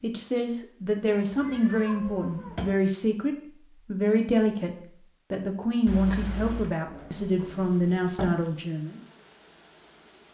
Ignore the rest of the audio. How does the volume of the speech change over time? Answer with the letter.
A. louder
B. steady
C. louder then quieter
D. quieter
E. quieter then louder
B.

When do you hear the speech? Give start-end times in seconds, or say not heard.
0.0-9.0.